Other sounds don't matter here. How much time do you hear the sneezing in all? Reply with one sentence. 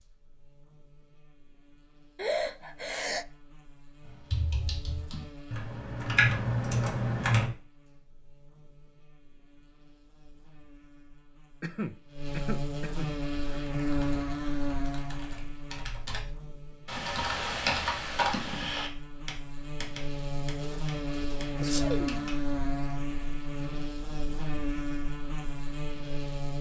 The sneezing can be heard for 5 seconds in total.